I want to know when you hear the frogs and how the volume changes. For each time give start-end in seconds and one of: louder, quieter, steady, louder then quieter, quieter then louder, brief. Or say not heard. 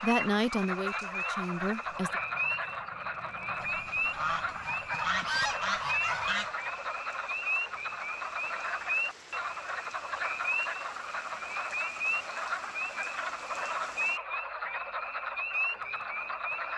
0.0-16.7 steady.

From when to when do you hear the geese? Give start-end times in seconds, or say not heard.
3.6-6.5.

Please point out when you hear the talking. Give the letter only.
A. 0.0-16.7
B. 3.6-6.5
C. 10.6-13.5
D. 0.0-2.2
D.